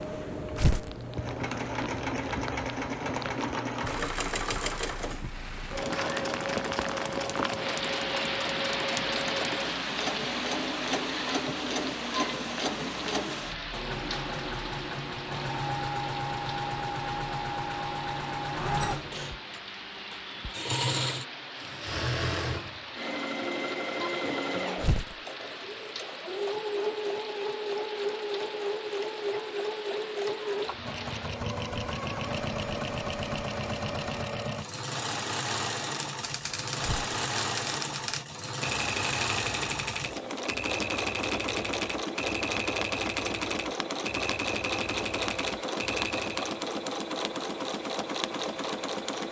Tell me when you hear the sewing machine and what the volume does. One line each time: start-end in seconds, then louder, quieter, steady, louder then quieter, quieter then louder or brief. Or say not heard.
0.0-49.2 steady.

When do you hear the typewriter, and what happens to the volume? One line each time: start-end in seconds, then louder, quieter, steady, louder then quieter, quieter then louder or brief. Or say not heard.
36.0-46.5 steady.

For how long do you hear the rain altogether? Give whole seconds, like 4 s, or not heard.
34 s.